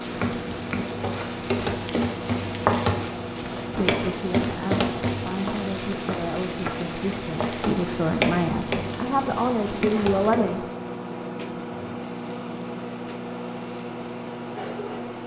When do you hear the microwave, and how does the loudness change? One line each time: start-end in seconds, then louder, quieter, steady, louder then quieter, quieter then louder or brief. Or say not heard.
0.0-15.2 steady.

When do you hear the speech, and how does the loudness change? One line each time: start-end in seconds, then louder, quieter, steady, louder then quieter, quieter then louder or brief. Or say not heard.
3.8-10.7 louder.